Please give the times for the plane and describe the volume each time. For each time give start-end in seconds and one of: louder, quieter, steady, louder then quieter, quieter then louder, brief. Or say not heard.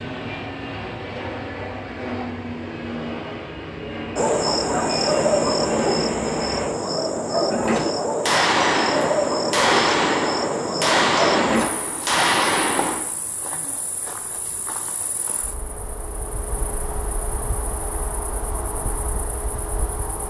0.0-6.7 steady.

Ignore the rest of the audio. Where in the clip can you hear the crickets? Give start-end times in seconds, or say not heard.
4.2-20.2.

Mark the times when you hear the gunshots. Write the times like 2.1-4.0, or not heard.
8.2-13.0.